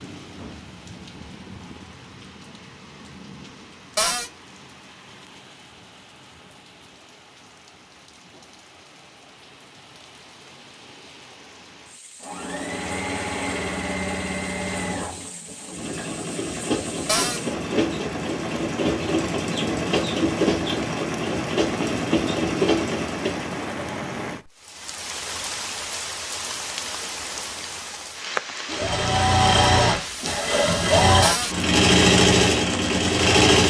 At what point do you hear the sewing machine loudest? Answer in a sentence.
The volume of the sewing machine peaks at 32 seconds.